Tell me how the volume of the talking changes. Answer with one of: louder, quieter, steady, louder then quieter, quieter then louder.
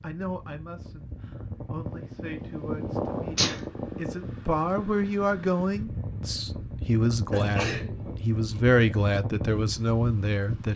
louder.